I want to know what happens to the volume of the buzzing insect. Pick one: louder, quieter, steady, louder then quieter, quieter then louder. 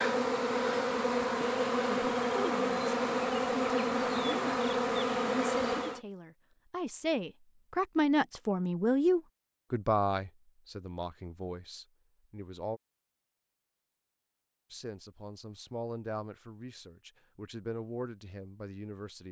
steady.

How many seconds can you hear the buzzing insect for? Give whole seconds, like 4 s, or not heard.
6 s.